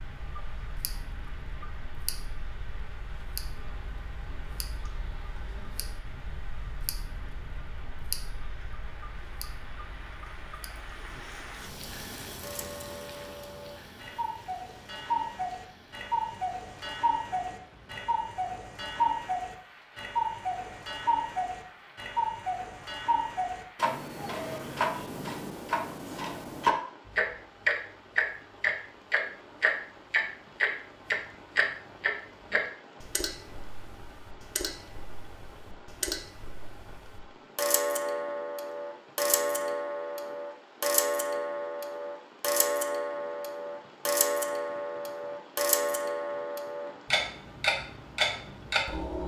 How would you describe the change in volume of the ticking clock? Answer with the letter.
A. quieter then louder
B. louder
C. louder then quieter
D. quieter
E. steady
B.